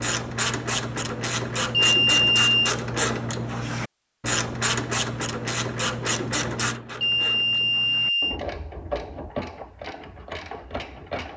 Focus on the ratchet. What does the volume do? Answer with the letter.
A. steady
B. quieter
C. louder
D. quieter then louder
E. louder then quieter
B.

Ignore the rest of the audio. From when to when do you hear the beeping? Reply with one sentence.
The beeping can be heard from 1.7 to 2.8 s and from 7.0 to 8.4 s.